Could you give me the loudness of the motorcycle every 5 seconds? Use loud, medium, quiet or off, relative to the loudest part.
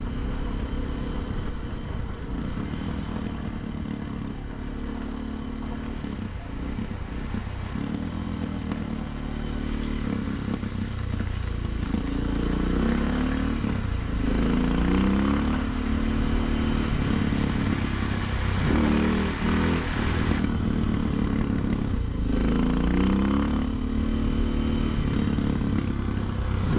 medium, medium, loud, loud, loud, loud.